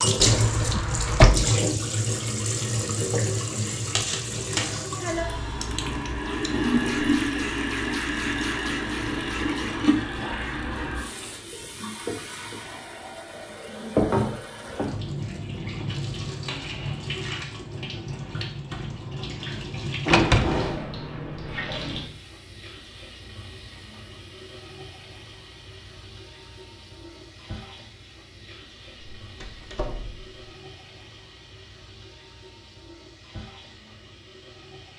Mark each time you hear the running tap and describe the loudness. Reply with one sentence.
You can hear the running tap from 0.0 to 34.9 s, getting quieter.